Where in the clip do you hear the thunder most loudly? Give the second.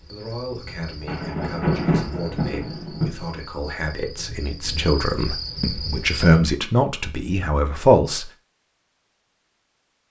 2 s.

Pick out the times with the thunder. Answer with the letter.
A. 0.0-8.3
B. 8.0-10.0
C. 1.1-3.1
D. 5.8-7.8
C.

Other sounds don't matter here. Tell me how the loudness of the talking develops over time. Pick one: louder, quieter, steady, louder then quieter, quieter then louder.
louder.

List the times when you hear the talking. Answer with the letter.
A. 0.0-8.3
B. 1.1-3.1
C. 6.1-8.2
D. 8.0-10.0
A.